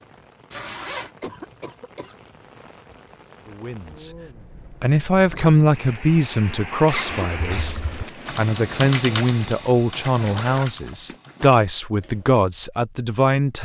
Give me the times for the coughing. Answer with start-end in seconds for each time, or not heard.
1.0-2.1, 6.9-7.8.